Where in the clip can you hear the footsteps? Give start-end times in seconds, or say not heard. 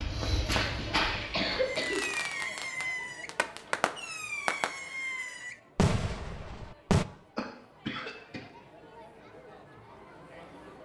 0.0-1.9.